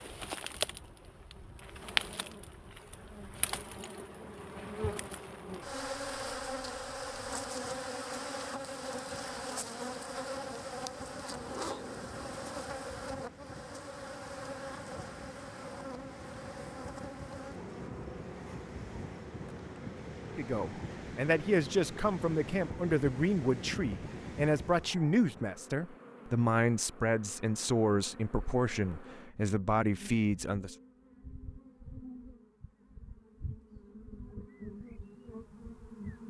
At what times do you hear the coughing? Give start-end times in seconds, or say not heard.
not heard.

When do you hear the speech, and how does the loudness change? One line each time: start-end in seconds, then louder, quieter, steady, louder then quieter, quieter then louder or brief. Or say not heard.
20.4-30.8 steady.